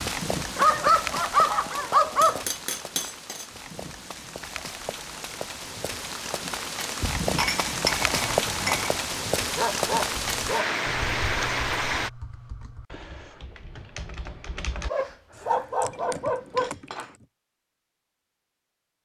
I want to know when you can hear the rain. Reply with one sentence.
You can hear the rain from 0.0 to 12.1 s.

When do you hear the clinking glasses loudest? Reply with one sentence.
The loudest moment of the clinking glasses is at 8 seconds.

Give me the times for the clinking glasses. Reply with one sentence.
The clinking glasses can be heard from 2.2 to 3.5 s, from 7.0 to 9.0 s and from 15.9 to 17.2 s.